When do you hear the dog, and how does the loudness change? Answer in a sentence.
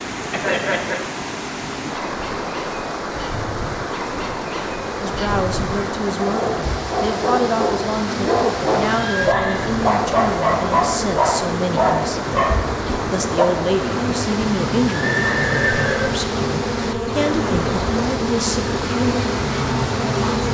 You can hear the dog from 1.9 to 13.4 s, getting louder.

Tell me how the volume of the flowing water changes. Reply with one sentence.
The loudness of the flowing water stays about the same.